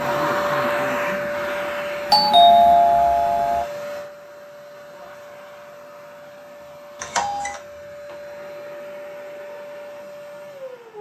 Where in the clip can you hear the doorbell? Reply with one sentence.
The doorbell can be heard from 2.1 to 3.6 s and from 7.0 to 7.6 s.